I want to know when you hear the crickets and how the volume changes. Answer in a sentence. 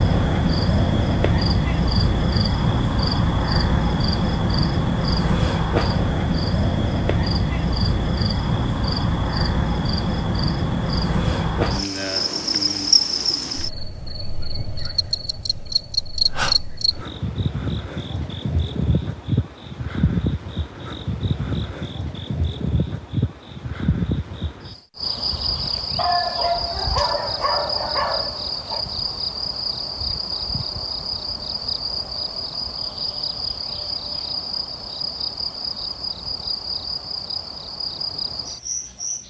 The crickets can be heard from 0.0 to 39.2 s, getting quieter.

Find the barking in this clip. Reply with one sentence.
The barking can be heard from 25.9 to 28.9 s.